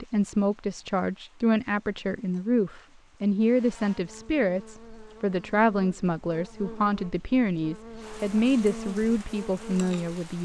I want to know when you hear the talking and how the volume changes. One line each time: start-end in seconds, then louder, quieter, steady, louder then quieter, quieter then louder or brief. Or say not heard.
0.0-10.3 steady.